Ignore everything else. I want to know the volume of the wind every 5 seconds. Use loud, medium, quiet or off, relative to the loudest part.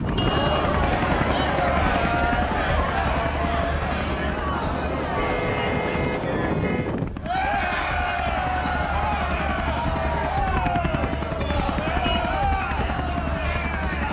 loud, loud, off.